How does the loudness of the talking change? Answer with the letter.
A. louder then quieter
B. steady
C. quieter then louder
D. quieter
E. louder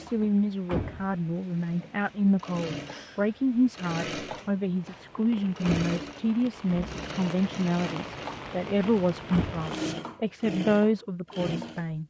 B.